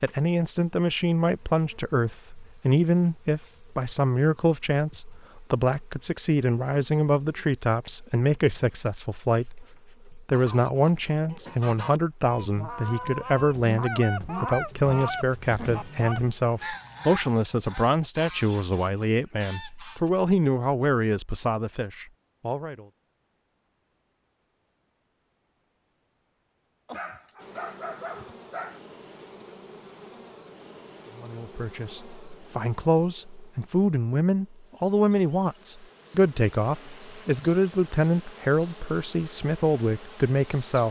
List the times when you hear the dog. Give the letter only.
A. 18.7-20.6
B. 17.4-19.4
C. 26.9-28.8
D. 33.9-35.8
C.